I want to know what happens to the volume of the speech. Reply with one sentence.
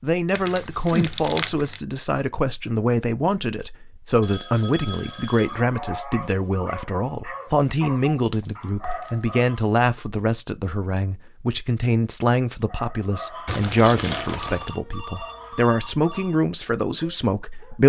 The volume of the speech stays about the same.